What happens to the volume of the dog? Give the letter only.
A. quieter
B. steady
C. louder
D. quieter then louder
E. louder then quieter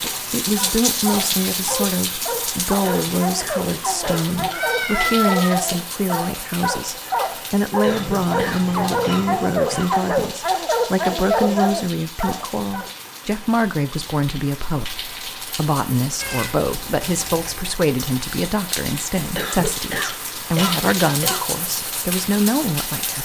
C.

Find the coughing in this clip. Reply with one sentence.
You can hear the coughing from 2.8 to 4.3 s, from 7.8 to 9.9 s and from 19.4 to 21.4 s.